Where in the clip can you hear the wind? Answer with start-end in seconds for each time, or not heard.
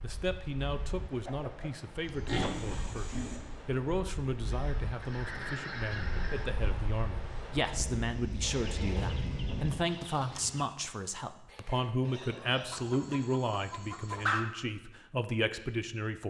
0.0-9.8.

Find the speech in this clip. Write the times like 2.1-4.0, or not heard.
0.0-16.2.